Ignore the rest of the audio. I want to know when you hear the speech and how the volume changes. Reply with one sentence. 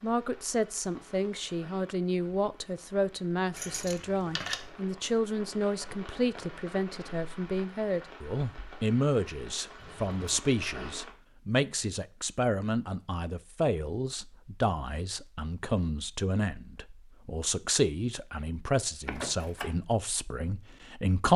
The speech can be heard from 0.0 to 21.3 s, at a steady volume.